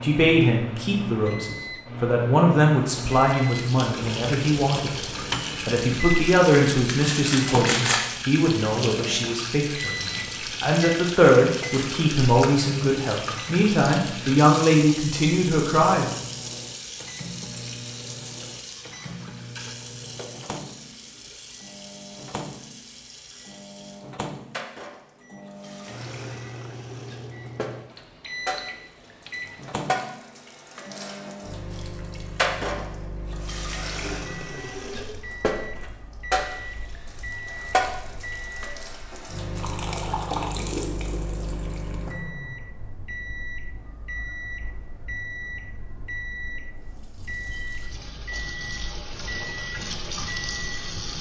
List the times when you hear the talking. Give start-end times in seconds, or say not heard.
0.0-16.1.